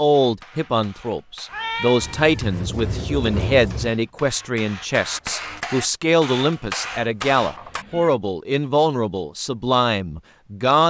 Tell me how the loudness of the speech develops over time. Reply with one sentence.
The volume of the speech stays about the same.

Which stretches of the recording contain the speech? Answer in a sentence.
The speech can be heard from 0.0 to 10.8 s.